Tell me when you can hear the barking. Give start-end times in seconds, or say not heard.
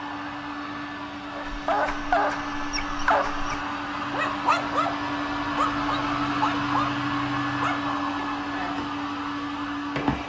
1.3-7.9.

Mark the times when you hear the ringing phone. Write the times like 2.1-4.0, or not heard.
not heard.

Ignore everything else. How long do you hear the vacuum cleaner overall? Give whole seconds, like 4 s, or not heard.
10 s.